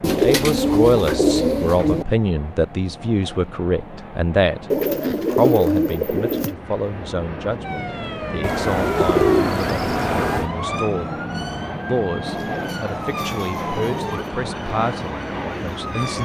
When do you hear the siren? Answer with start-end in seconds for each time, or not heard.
7.6-16.2.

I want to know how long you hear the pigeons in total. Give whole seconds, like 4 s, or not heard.
8 s.